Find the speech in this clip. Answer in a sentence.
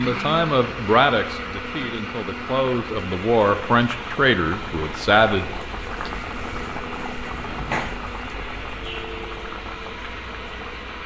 You can hear the speech from 0.0 to 5.5 s.